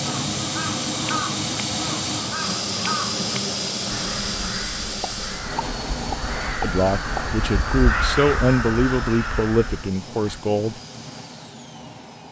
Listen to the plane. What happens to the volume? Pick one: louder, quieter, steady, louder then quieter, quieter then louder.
quieter.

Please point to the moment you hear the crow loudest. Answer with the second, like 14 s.
8 s.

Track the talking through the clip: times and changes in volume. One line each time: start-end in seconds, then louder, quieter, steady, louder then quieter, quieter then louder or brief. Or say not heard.
6.6-10.8 louder then quieter.